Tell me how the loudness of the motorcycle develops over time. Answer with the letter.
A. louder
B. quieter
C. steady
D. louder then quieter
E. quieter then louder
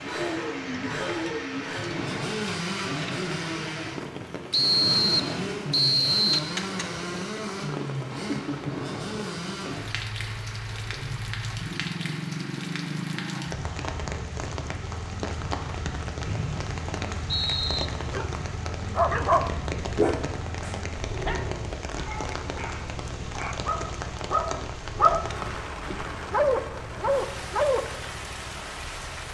B.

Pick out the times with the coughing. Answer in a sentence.
You can't hear the coughing here.